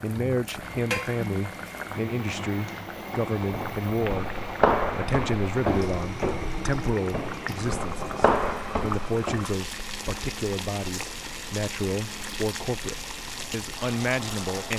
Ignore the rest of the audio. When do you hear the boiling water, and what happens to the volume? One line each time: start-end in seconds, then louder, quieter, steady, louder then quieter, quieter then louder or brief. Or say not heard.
0.0-14.7 steady.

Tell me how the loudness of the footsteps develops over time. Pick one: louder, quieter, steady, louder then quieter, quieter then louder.
quieter then louder.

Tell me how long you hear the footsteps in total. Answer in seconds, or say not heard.
6 s.